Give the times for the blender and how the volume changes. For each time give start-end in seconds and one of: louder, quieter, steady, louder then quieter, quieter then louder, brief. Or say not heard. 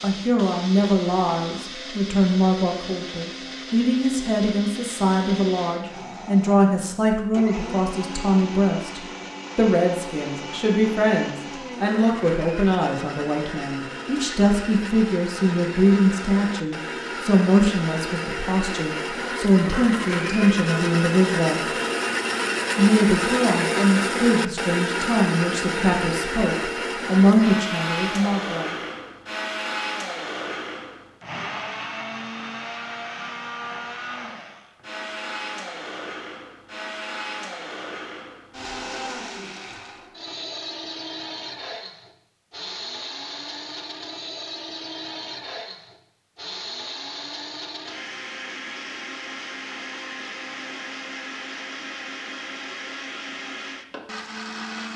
0.0-54.9 louder then quieter.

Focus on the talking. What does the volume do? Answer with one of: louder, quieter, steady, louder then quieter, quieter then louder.
steady.